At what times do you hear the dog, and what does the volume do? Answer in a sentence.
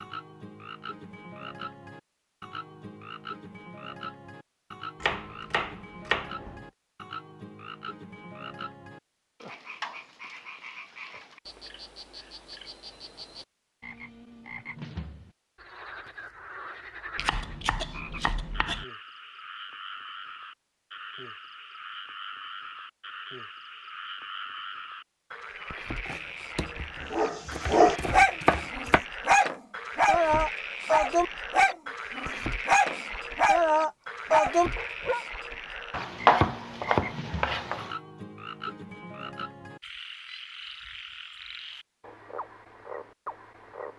You can hear the dog from 27.1 to 35.2 s, at a steady volume.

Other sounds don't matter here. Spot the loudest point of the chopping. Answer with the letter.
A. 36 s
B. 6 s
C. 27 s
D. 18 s
A.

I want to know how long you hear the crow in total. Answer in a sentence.
The crow can't be heard in this clip.